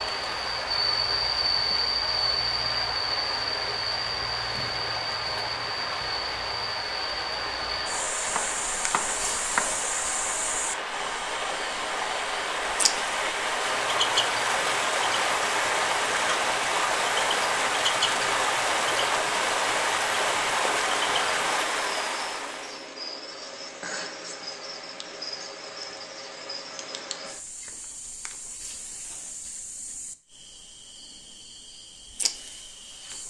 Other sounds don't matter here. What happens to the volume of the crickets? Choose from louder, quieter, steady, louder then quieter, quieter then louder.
quieter.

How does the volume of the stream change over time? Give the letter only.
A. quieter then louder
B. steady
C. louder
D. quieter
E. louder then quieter
C.